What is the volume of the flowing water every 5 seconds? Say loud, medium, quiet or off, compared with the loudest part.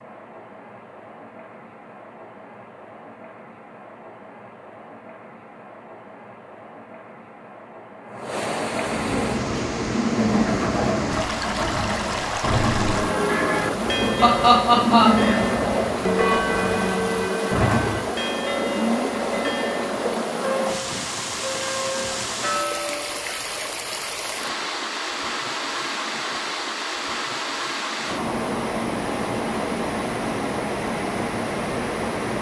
quiet, medium, loud, loud, loud, loud, loud.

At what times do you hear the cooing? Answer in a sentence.
The cooing can be heard from 8.7 to 18.1 s.